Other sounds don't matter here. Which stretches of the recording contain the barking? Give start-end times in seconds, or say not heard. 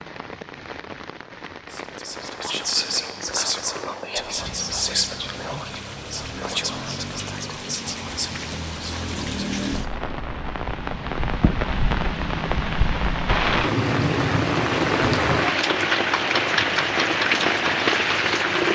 not heard.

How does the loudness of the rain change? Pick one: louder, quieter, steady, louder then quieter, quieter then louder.
louder.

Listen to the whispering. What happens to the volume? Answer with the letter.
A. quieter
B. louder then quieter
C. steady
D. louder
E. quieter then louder
A.